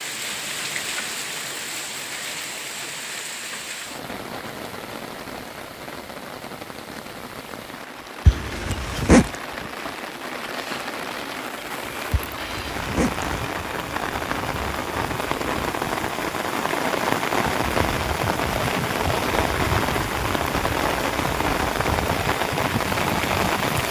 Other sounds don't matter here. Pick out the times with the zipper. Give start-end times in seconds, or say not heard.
8.2-9.3, 12.1-13.4.